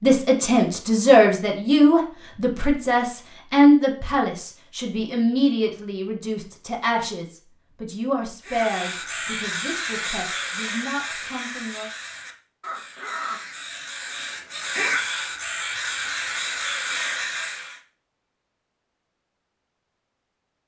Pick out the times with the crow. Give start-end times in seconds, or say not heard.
8.4-17.8.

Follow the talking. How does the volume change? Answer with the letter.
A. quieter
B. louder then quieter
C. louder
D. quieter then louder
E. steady
A.